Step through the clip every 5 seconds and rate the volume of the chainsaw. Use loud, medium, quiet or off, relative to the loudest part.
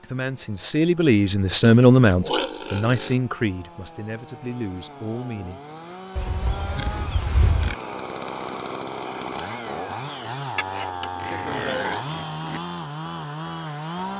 quiet, loud, loud.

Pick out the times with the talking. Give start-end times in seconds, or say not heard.
0.0-5.6.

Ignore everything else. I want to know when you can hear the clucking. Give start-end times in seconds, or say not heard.
not heard.